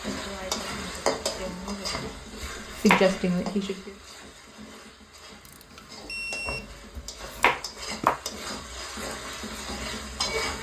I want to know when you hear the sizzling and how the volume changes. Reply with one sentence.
The sizzling can be heard from 0.0 to 10.5 s, getting quieter then louder.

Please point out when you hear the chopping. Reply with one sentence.
The chopping can be heard from 1.5 to 3.1 s and from 6.0 to 8.2 s.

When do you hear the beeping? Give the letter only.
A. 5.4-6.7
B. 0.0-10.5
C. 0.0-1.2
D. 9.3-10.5
A.